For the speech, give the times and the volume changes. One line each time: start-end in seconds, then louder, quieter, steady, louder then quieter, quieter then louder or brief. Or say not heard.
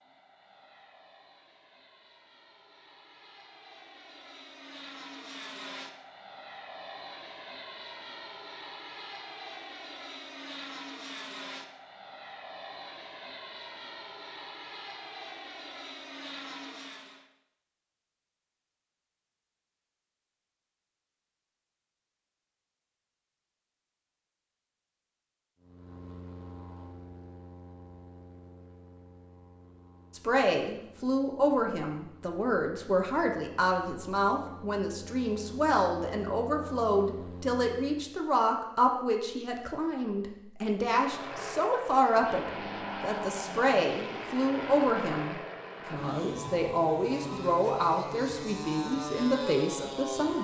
30.1-50.4 steady.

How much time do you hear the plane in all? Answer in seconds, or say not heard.
39 s.